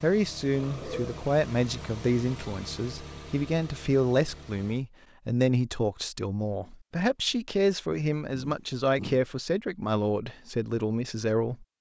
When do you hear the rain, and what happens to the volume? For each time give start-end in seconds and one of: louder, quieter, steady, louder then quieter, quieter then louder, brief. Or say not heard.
not heard.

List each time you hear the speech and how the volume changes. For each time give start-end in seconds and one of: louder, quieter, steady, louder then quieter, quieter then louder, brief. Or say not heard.
0.0-11.7 steady.